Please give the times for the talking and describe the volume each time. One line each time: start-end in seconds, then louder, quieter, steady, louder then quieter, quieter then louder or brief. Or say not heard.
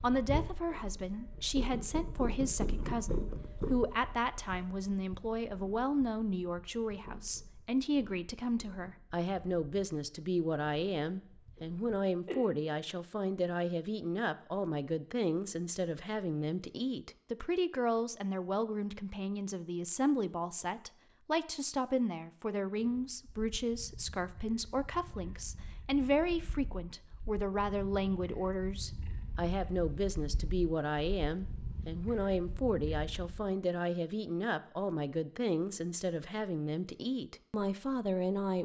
0.0-38.5 steady.